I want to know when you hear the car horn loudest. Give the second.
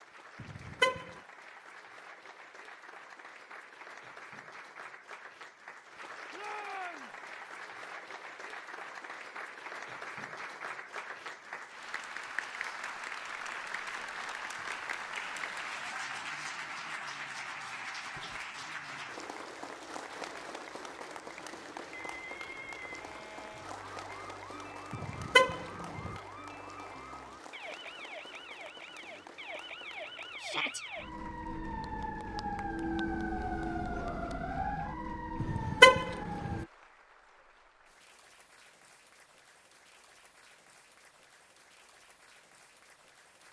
36 s.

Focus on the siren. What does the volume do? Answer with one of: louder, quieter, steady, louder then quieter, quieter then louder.
louder.